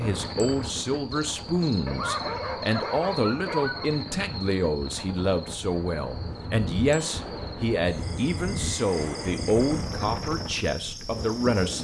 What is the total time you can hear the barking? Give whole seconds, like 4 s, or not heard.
2 s.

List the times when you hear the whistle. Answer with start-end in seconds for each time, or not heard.
not heard.